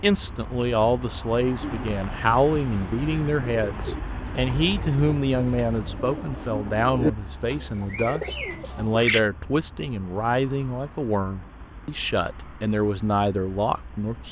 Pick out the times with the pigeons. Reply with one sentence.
The pigeons can be heard from 1.6 to 9.2 s.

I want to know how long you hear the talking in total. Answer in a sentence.
You can hear the talking for 14 seconds altogether.